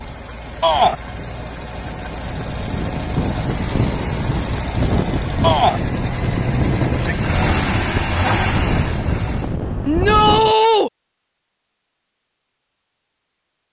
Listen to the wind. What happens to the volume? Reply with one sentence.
The loudness of the wind goes up.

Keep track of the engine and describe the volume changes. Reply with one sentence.
The loudness of the engine goes up.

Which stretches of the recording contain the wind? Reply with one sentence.
The wind can be heard from 0.0 to 10.6 s.